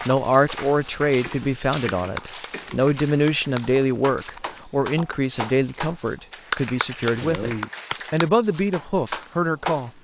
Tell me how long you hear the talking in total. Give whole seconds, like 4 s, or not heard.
10 s.